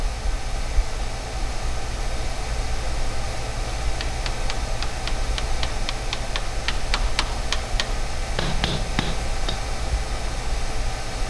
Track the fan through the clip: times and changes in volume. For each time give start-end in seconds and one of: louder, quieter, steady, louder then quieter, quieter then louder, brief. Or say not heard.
0.0-11.2 steady.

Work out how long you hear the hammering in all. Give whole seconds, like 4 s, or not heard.
6 s.